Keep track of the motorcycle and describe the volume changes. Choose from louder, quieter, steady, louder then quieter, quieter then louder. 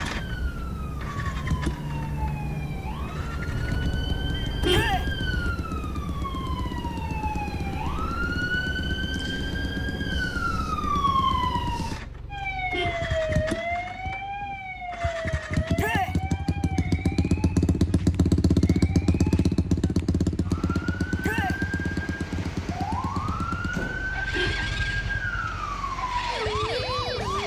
louder then quieter.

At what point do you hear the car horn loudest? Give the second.
5 s.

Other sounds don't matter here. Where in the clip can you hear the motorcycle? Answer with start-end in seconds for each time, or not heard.
0.0-27.4.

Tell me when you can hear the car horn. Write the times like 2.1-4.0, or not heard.
3.5-5.5, 11.8-13.6, 23.2-25.2.